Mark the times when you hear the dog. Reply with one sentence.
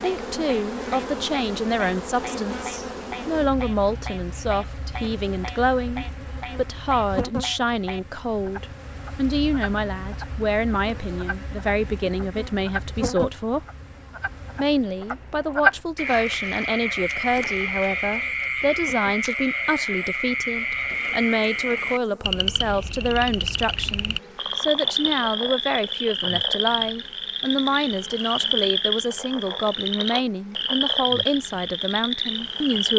You can't hear the dog here.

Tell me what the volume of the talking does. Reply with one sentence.
The volume of the talking stays about the same.